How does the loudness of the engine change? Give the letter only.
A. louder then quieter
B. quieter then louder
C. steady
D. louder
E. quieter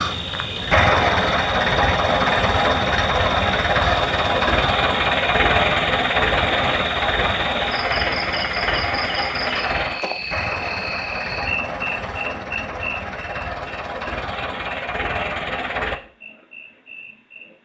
E.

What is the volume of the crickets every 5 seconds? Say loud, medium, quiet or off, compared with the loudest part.
loud, loud, loud, quiet.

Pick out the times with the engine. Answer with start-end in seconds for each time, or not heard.
0.0-16.0.